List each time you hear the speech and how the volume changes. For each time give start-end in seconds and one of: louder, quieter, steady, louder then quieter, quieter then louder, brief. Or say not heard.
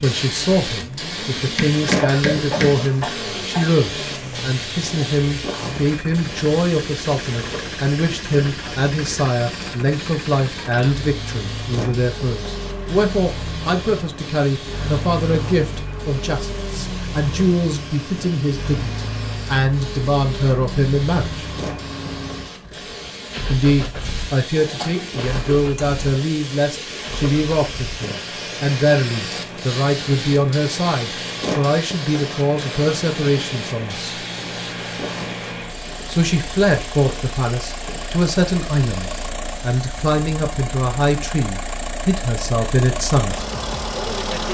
0.0-21.4 steady
23.5-34.1 steady
36.1-43.5 steady.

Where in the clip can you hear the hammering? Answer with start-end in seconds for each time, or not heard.
1.4-2.9.